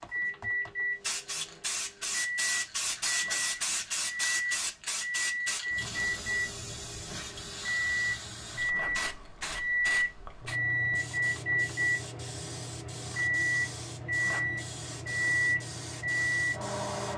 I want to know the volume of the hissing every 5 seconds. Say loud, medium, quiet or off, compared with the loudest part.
loud, medium, medium, medium.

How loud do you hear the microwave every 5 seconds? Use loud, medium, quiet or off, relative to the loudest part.
medium, loud, loud, loud.